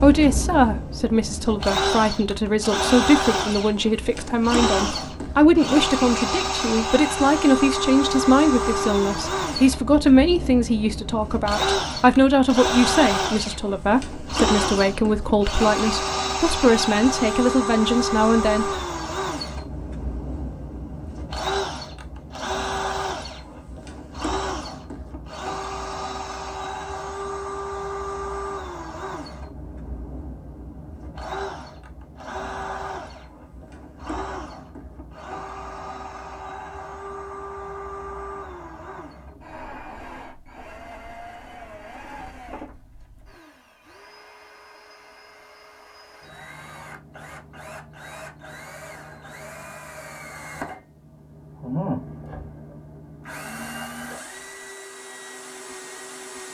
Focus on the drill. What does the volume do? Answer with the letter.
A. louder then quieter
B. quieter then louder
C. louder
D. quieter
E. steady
D.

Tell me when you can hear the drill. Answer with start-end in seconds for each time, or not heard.
0.0-56.5.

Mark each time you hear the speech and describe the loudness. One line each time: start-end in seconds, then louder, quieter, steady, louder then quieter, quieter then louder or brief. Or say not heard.
0.0-18.8 steady.